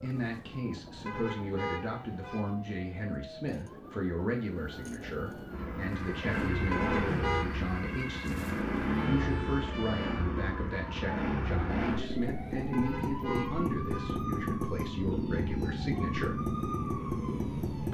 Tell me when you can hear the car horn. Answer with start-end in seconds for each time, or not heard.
1.1-2.5, 6.7-7.5, 12.7-14.2.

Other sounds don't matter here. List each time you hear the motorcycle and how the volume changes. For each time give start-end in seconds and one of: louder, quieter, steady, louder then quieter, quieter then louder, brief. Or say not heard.
5.5-17.8 steady.